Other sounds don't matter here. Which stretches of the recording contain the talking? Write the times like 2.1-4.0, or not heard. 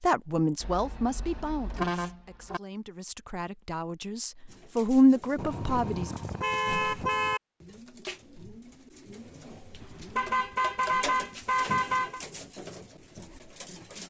0.0-6.1.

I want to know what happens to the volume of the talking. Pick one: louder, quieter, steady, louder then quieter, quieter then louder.
quieter then louder.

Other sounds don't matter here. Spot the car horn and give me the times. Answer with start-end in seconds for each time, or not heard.
0.6-2.6, 5.3-7.4, 9.8-12.2.